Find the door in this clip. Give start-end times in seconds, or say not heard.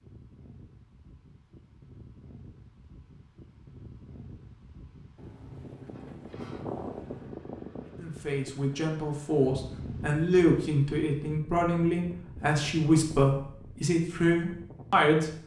5.2-7.4.